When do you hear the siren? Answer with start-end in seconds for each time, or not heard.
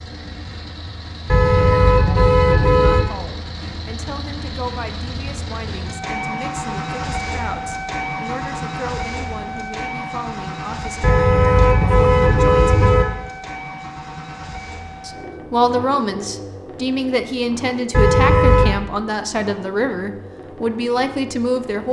not heard.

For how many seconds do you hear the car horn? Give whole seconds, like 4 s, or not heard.
5 s.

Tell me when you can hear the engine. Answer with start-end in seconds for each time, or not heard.
0.0-21.8.